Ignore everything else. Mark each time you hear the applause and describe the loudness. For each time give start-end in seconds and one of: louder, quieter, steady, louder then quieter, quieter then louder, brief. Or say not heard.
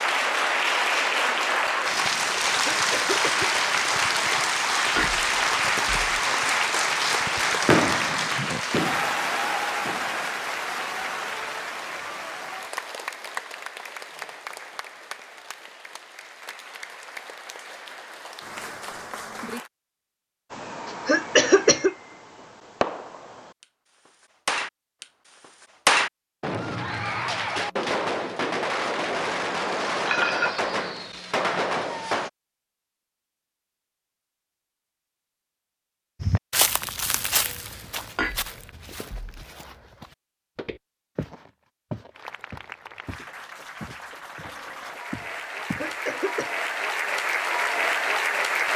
0.0-19.7 quieter
42.1-48.7 louder.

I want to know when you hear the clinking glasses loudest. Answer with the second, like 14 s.
30 s.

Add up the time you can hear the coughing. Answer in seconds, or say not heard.
3 s.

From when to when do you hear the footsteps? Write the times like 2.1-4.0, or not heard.
36.2-45.9.